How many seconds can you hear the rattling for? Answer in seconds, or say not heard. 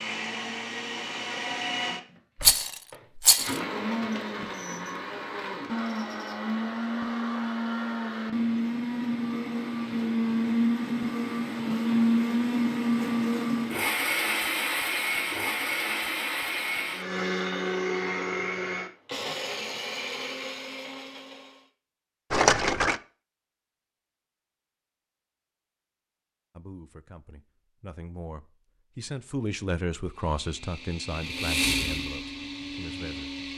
2 s.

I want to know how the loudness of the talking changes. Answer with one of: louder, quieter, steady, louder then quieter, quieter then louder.
louder then quieter.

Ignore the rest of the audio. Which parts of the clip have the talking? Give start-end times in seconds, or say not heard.
26.5-33.3.